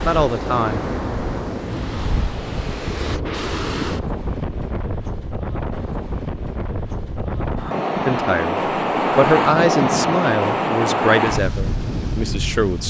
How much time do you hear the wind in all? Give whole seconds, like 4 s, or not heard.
13 s.